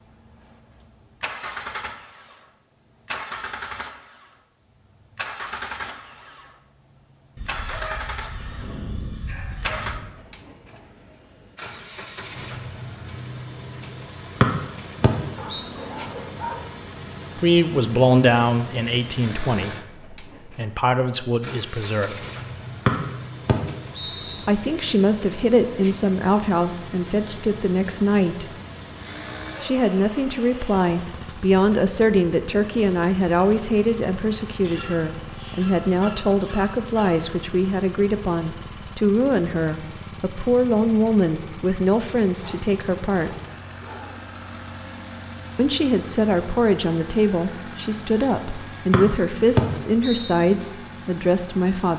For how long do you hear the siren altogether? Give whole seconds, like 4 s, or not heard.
not heard.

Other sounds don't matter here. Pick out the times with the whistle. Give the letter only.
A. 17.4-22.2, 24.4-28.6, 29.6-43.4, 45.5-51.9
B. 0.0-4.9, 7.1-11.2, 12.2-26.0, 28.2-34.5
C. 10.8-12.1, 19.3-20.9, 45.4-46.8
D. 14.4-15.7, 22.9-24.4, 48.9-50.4
D.